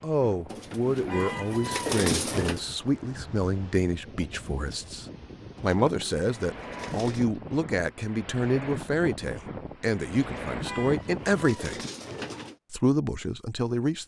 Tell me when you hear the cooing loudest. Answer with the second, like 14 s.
2 s.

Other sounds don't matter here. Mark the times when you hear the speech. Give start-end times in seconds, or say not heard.
0.0-11.8, 12.7-14.0.